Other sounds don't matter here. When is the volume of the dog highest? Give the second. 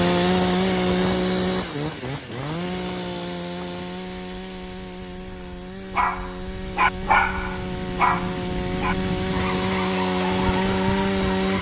7 s.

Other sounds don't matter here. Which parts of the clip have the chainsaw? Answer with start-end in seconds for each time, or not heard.
0.0-11.5.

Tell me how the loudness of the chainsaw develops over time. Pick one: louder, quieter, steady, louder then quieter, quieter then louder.
quieter then louder.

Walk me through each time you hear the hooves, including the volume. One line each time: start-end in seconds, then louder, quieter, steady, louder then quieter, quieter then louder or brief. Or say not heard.
not heard.